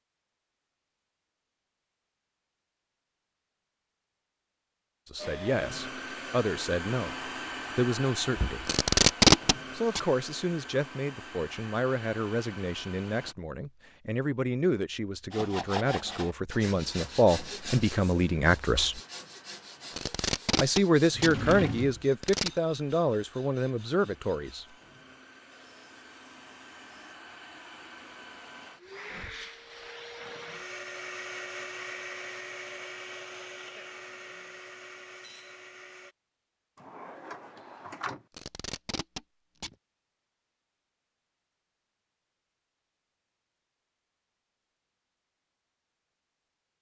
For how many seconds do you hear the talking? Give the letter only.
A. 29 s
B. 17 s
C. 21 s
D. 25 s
B.